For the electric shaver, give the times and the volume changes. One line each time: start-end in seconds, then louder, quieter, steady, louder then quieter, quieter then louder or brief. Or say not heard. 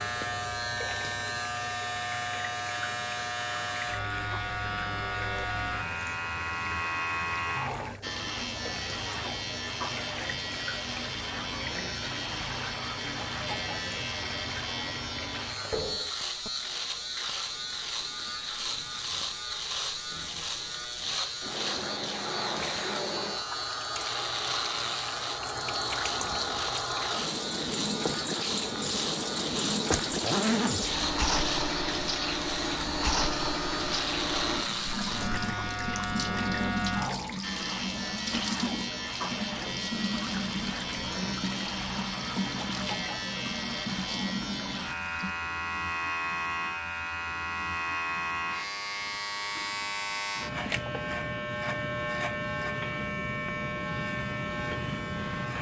0.0-55.5 steady.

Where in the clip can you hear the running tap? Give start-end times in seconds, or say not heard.
0.0-45.4.